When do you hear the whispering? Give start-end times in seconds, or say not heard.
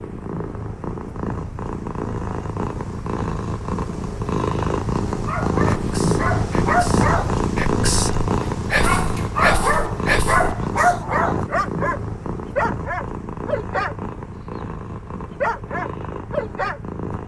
5.8-10.9.